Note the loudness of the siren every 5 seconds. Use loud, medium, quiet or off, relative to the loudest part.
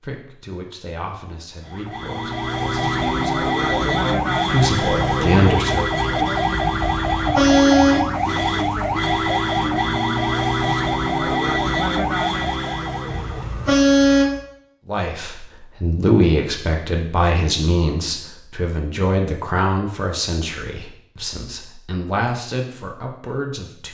loud, loud, loud, off, off.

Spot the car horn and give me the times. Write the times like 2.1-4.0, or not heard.
6.8-8.1, 13.1-14.4.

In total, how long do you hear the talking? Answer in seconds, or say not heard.
15 s.